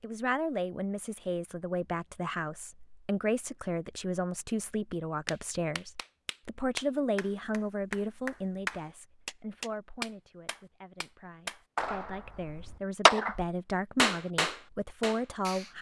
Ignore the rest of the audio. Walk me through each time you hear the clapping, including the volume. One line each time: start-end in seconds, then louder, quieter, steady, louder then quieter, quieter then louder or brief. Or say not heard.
5.2-15.7 louder.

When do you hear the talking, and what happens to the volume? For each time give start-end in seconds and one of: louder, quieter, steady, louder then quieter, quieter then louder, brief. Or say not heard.
0.0-15.7 quieter then louder.